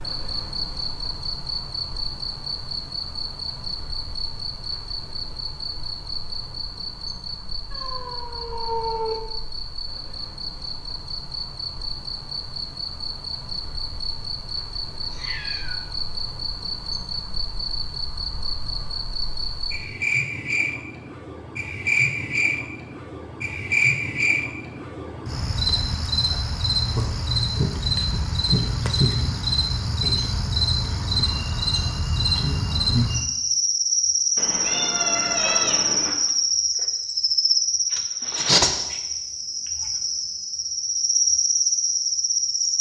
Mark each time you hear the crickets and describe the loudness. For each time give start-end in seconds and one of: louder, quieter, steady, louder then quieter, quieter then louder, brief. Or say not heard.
0.0-42.7 louder.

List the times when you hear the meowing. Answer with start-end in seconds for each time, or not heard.
7.7-9.2, 15.0-15.8, 34.4-36.2.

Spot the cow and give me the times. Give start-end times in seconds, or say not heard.
not heard.